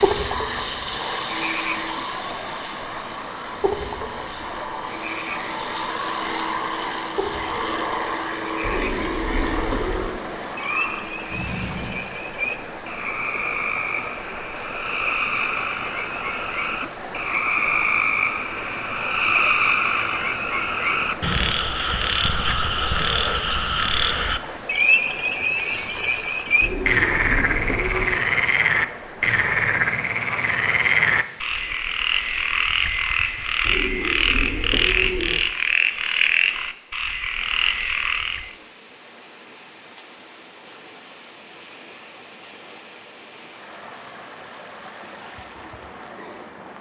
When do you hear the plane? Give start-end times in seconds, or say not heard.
0.0-12.1.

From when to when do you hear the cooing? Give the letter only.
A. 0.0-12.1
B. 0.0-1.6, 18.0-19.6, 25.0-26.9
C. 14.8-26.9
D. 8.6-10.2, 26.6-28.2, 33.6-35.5
D.